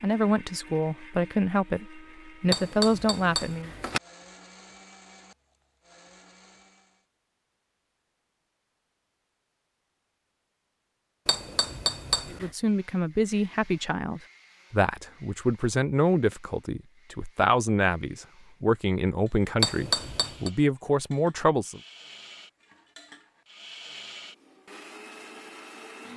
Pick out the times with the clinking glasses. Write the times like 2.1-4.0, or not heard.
2.5-4.0, 11.2-12.5, 19.6-20.5.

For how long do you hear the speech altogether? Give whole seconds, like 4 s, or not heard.
13 s.